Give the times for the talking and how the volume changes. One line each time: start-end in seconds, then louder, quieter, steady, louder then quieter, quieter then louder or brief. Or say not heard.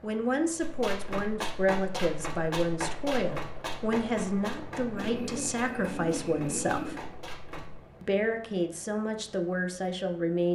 0.0-7.0 steady
8.0-10.4 brief.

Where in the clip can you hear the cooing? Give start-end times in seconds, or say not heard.
5.0-7.0.